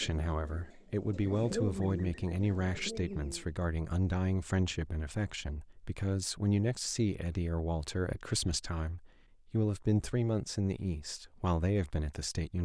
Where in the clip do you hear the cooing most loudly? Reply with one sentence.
The loudest moment of the cooing is at 2 seconds.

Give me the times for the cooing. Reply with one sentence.
You can hear the cooing from 0.0 to 3.5 s.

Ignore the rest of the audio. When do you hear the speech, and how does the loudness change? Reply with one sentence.
You can hear the speech from 0.0 to 12.6 s, at a steady volume.